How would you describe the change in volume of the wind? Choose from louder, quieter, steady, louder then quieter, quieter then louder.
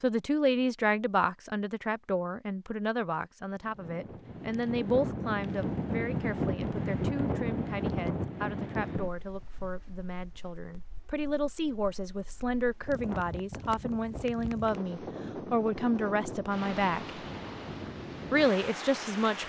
quieter then louder.